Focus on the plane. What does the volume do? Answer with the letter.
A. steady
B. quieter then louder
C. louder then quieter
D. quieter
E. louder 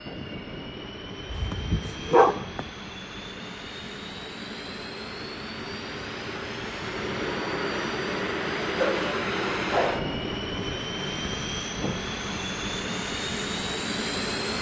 E.